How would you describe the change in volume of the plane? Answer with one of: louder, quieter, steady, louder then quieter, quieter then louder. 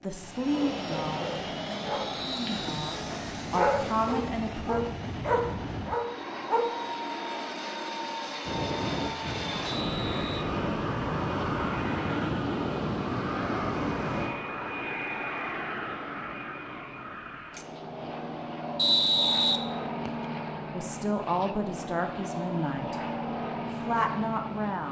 steady.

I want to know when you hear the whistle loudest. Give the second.
19 s.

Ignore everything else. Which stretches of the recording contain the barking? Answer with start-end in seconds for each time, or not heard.
0.5-6.7.